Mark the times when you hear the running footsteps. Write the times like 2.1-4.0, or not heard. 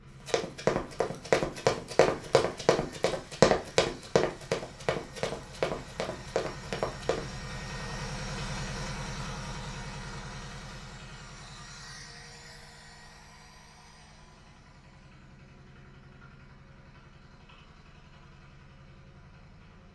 0.2-7.2.